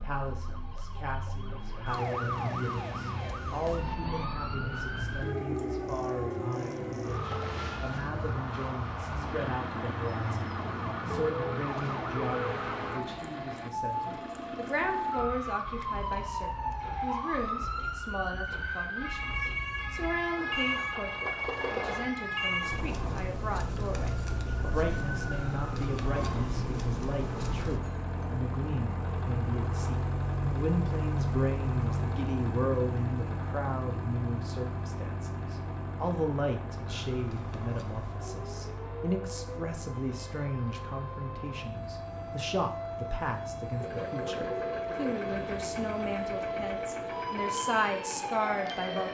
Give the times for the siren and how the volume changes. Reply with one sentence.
You can hear the siren from 0.0 to 27.8 s, at a steady volume; and from 37.0 to 49.0 s, getting louder.